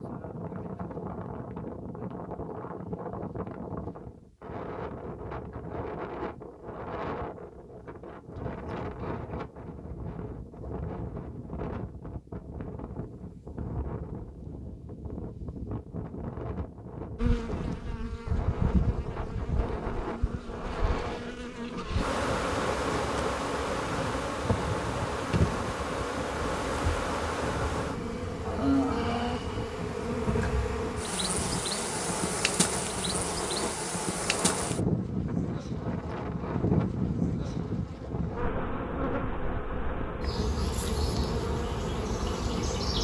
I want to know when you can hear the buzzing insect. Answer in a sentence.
You can hear the buzzing insect from 17.1 to 43.0 s.